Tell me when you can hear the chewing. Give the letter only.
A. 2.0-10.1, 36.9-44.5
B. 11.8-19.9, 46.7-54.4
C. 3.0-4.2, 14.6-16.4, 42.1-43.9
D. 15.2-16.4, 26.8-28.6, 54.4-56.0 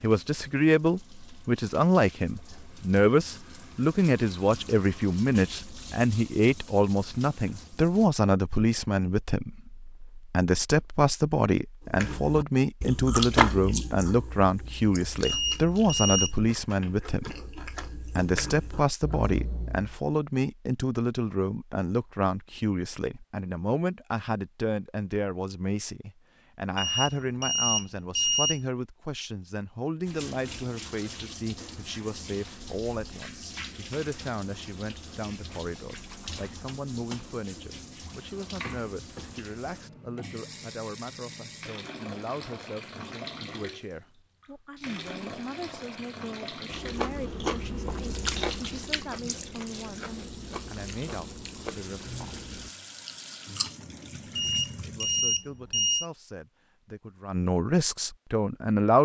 B.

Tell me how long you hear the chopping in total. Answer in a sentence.
You can't hear the chopping here.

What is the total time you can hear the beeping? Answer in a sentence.
You can hear the beeping for 5 seconds altogether.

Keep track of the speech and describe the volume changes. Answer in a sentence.
The loudness of the speech goes down, then up.